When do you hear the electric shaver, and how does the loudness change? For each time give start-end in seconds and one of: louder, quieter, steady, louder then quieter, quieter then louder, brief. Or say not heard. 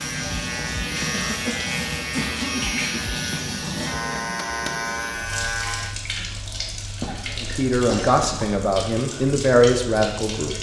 0.0-6.0 steady.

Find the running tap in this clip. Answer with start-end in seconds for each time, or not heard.
0.0-10.5.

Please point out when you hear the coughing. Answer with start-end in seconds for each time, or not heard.
1.1-3.2, 7.0-8.5.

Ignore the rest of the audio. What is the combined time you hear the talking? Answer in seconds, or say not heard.
3 s.